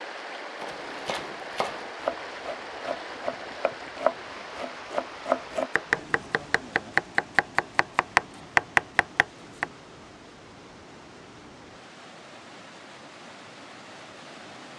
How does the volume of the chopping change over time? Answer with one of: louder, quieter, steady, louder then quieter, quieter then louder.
louder.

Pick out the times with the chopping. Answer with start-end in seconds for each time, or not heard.
0.6-9.7.